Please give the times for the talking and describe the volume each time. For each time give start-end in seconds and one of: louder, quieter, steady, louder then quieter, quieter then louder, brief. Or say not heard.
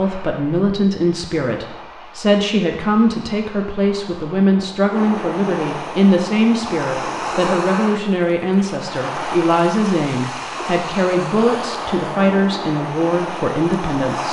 0.0-14.2 steady.